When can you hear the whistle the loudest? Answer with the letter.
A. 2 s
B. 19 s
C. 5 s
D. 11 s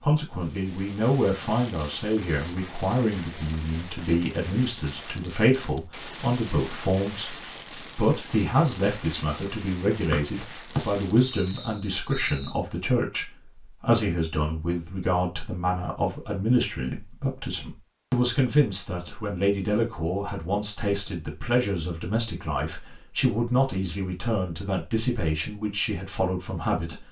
D.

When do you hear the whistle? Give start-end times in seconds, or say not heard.
10.1-12.6.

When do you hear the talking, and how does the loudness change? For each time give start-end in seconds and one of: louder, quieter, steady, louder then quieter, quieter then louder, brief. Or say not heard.
0.0-7.3 steady
8.0-27.0 steady.